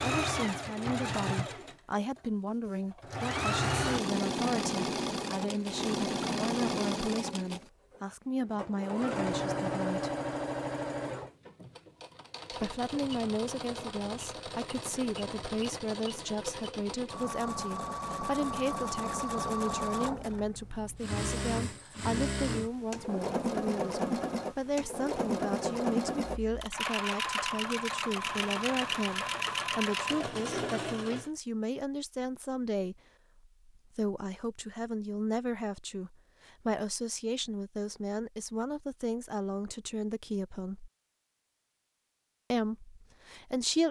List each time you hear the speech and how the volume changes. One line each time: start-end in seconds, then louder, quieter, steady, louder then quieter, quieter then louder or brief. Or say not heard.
0.0-10.1 steady
12.5-40.9 steady
42.5-43.8 brief.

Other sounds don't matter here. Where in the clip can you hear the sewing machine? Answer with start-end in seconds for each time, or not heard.
0.0-31.3.